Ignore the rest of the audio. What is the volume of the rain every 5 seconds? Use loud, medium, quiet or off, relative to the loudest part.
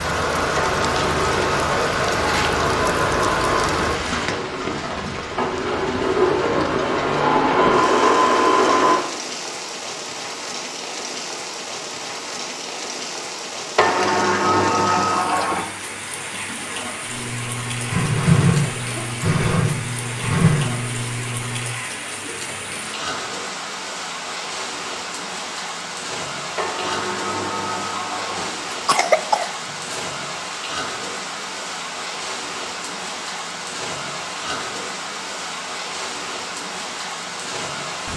loud, medium, medium, medium, medium, medium, medium, medium.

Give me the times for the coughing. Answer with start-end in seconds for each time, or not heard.
28.6-30.1.